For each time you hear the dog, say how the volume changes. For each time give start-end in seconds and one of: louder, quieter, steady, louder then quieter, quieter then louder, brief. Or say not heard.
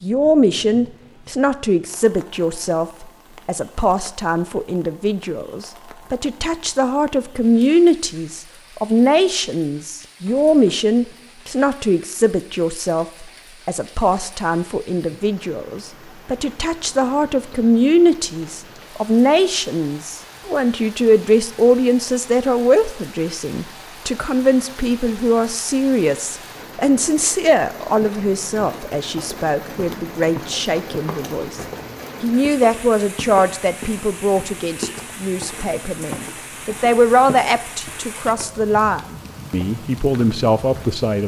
not heard.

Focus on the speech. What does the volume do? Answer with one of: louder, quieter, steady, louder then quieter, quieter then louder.
steady.